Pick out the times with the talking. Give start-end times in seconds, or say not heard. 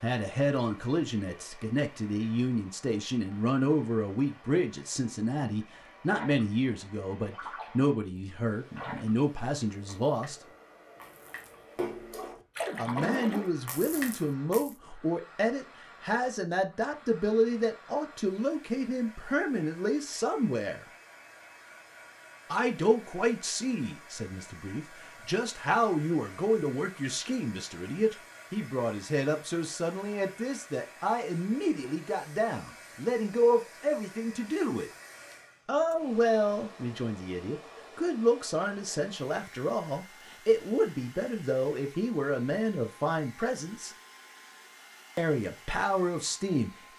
0.0-10.3, 12.8-20.9, 22.5-34.9, 35.6-44.0, 45.1-46.9.